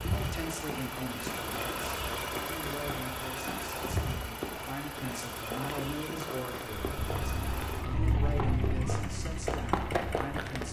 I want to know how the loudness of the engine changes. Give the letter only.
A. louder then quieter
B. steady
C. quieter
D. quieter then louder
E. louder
C.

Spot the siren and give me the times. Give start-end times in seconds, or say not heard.
6.7-10.6.